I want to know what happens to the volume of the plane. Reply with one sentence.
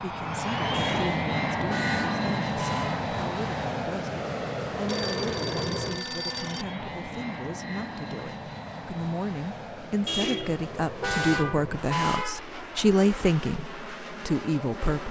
The volume of the plane goes down.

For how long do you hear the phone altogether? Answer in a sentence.
The phone can be heard for 2 seconds in total.